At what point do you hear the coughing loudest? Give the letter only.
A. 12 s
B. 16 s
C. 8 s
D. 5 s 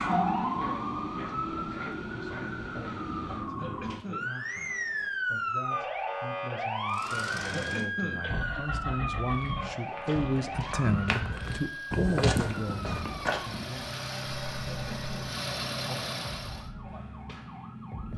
C.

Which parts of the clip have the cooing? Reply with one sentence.
The cooing can't be heard in this clip.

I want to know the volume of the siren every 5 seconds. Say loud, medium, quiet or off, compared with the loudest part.
loud, loud, medium, medium.